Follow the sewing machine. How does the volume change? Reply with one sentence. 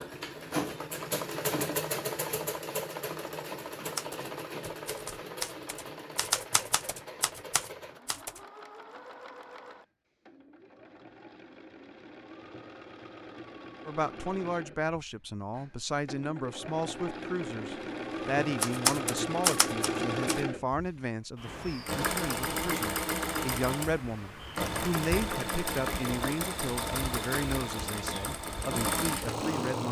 The volume of the sewing machine goes down, then up.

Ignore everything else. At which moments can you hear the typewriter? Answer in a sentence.
You can hear the typewriter from 4.0 to 8.4 s and from 18.6 to 20.4 s.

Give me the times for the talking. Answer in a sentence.
You can hear the talking from 13.8 to 29.8 s.